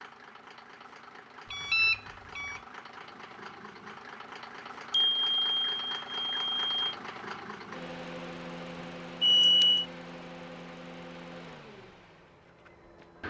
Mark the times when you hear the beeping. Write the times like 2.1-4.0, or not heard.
1.5-2.6, 4.9-7.0, 9.2-9.8.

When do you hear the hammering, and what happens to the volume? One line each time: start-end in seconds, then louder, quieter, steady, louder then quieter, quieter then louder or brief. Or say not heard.
not heard.